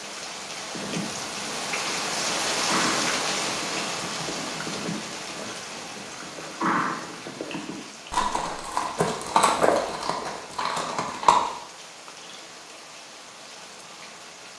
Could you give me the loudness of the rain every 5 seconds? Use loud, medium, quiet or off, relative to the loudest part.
loud, medium, quiet.